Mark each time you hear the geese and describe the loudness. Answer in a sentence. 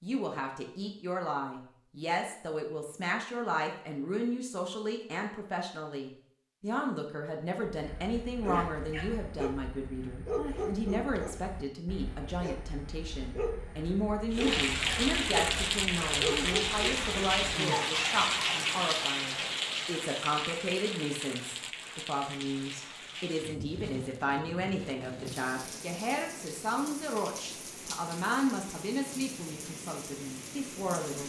The geese can't be heard in this clip.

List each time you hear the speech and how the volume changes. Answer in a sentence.
You can hear the speech from 0.0 to 31.2 s, at a steady volume.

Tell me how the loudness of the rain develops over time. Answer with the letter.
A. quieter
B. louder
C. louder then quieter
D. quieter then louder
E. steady
A.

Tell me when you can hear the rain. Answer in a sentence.
You can hear the rain from 14.3 to 31.2 s.